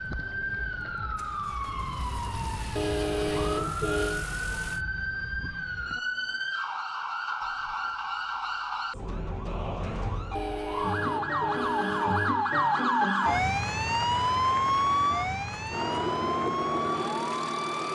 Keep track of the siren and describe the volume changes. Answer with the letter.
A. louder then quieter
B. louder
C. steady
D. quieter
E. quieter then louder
B.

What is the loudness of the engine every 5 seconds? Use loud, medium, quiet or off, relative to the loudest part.
quiet, off, off, loud.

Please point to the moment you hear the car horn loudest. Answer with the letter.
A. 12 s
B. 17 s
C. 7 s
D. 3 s
D.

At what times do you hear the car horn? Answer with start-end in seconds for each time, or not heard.
2.8-4.2, 10.3-12.3.